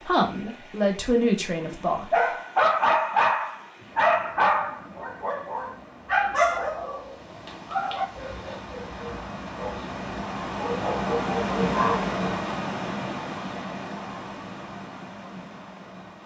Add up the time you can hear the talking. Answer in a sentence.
You can hear the talking for 2 seconds altogether.